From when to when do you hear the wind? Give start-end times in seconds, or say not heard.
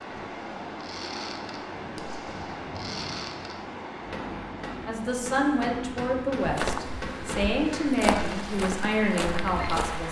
0.0-10.0.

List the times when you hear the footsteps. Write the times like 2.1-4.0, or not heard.
6.4-10.0.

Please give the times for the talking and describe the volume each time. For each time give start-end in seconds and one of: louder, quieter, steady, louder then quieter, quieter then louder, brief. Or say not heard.
4.8-10.0 steady.